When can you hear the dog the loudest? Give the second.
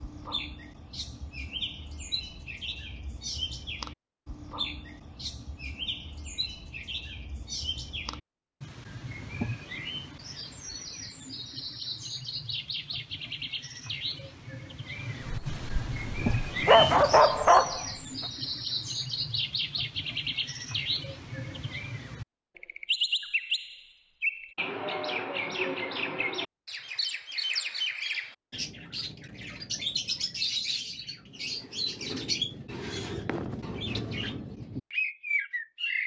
17 s.